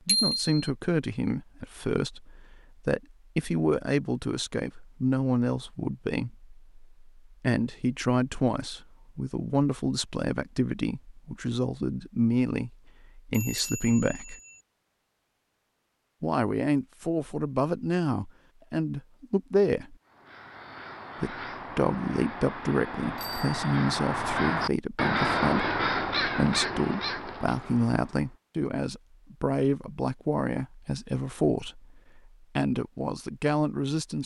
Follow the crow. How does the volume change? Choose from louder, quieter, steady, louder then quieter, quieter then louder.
louder then quieter.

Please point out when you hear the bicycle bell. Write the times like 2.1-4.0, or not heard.
0.1-0.6, 13.3-14.6, 23.1-23.6.